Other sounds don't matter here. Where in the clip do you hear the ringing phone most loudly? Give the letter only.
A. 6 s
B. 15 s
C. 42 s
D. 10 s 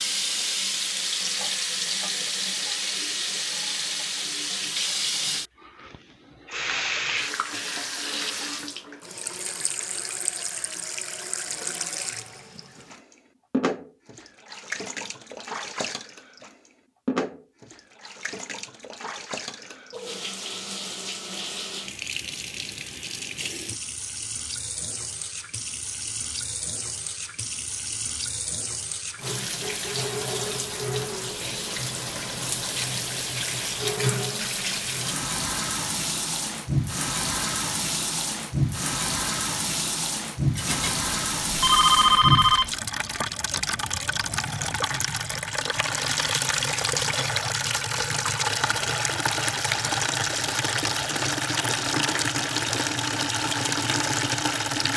C.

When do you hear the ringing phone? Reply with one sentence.
The ringing phone can be heard from 40.5 to 42.8 s.